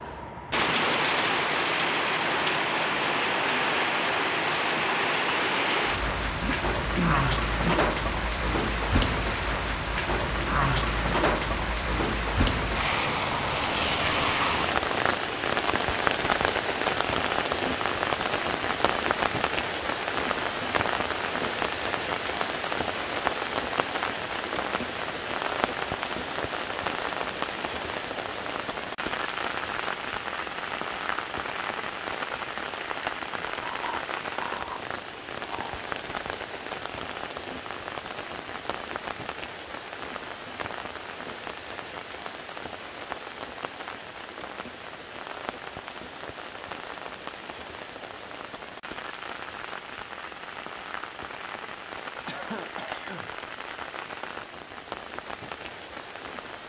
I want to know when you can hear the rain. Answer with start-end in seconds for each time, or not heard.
0.0-56.6.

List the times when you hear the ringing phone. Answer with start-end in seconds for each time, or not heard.
not heard.